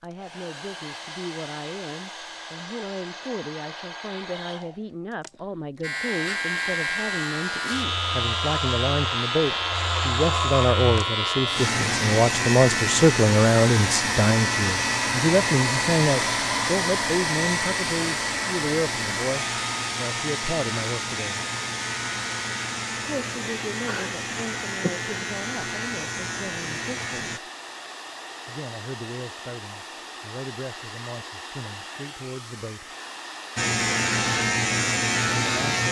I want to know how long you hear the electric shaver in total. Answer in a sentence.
You can hear the electric shaver for 24 seconds altogether.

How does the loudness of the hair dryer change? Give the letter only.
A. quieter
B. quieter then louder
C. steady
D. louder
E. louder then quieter
E.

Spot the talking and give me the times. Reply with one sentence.
You can hear the talking from 0.0 to 21.4 s, from 23.0 to 27.4 s, from 28.4 to 32.9 s and from 35.3 to 35.8 s.